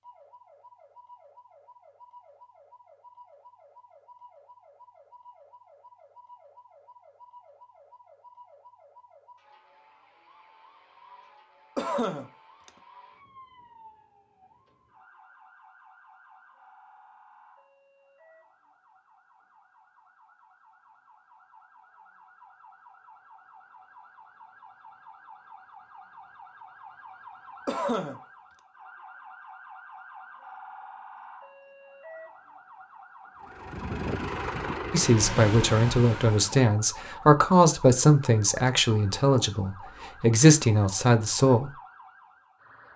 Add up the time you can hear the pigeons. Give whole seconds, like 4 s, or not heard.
not heard.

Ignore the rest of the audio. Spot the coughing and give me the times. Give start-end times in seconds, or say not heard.
11.8-12.7, 27.6-28.2.